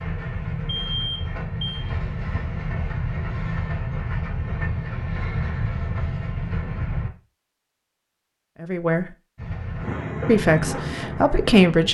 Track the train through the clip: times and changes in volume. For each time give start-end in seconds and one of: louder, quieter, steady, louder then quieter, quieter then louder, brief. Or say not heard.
0.0-7.1 steady
9.3-11.8 brief.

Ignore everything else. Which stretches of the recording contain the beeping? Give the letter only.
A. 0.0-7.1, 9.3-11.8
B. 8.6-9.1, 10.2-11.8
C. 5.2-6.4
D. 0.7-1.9
D.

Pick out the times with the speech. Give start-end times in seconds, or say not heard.
8.6-9.1, 10.2-11.8.